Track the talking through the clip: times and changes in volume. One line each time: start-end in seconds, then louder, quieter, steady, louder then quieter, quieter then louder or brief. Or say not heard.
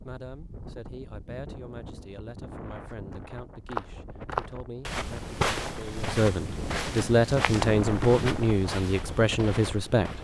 0.1-10.1 louder.